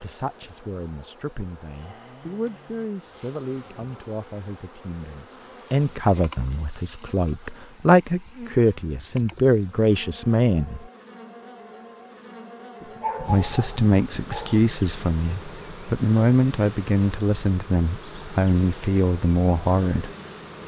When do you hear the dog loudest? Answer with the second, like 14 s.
13 s.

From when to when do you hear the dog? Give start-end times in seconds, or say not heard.
12.8-14.6.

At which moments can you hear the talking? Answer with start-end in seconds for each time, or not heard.
0.0-10.8, 13.2-20.1.